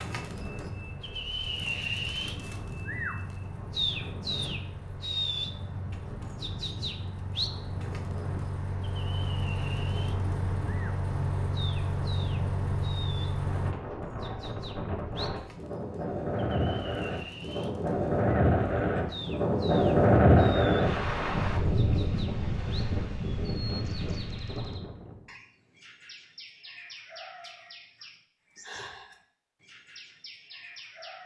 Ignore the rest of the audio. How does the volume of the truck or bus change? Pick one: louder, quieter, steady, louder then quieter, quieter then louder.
louder.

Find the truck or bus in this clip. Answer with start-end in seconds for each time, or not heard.
0.1-13.8.